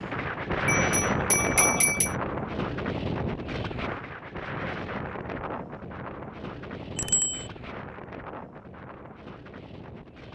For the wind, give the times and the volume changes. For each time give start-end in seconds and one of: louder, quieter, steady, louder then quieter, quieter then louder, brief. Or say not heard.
0.0-10.2 quieter.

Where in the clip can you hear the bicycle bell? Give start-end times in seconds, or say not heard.
0.7-2.1, 7.0-7.5.